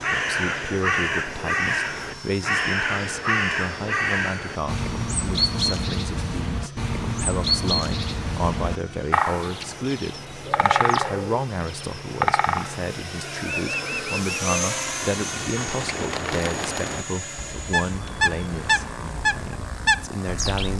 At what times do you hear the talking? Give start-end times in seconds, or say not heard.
0.0-20.7.